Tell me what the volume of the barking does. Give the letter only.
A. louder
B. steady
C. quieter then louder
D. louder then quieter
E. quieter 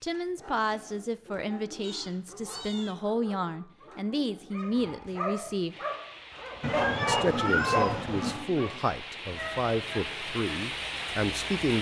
D.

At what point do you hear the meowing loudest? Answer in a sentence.
The volume of the meowing peaks at 8 seconds.